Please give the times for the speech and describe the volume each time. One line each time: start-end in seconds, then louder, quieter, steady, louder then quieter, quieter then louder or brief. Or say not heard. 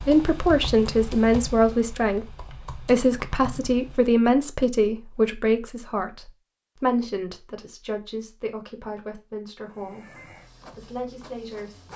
0.0-11.9 quieter.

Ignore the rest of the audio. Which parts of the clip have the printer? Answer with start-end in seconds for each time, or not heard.
9.6-11.9.